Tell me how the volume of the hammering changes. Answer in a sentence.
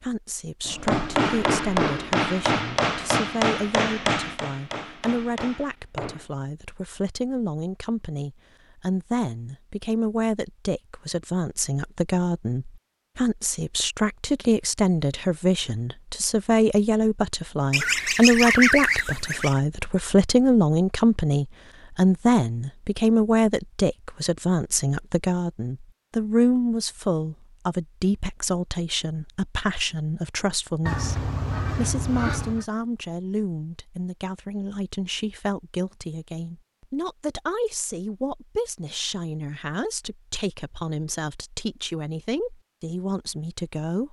The volume of the hammering goes down.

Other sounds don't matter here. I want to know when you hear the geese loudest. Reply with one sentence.
The loudest moment of the geese is at 19 seconds.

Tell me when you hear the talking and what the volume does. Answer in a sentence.
You can hear the talking from 0.0 to 44.0 s, getting louder then quieter.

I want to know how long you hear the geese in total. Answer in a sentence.
The geese can be heard for 4 seconds in total.